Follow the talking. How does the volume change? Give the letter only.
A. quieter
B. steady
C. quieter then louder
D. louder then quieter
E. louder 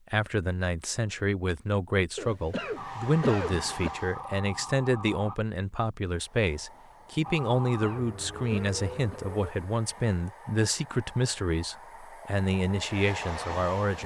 B.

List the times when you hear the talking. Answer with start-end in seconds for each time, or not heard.
0.1-14.0.